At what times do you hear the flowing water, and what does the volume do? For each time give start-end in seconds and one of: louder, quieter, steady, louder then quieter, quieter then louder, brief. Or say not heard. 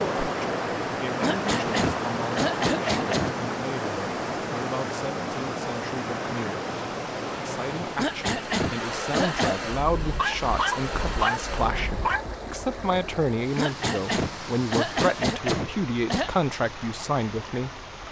0.0-18.0 quieter.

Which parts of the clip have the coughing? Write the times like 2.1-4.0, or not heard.
1.2-3.4, 8.0-9.7, 13.6-16.3.